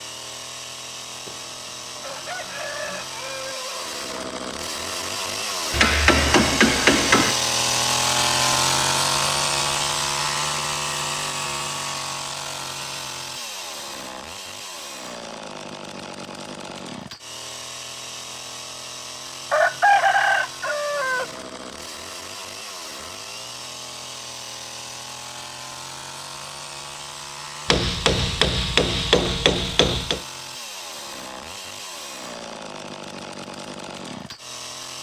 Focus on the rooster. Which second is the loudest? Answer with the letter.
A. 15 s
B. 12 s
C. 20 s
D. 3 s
C.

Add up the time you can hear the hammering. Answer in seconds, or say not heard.
4 s.